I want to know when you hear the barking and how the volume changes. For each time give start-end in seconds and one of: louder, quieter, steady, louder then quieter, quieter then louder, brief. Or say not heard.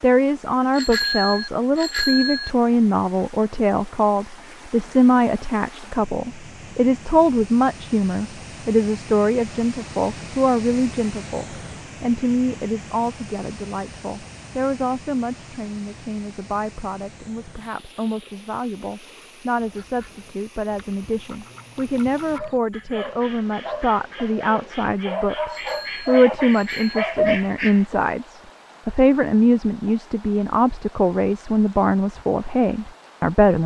22.1-27.4 louder.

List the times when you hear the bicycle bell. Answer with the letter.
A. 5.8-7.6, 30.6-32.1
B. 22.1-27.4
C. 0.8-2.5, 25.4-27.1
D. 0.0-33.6
C.